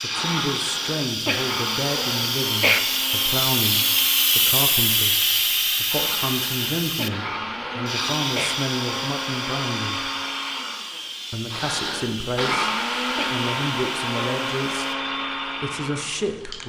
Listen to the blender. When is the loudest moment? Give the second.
13 s.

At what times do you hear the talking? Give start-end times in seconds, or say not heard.
0.0-10.1, 11.3-16.6.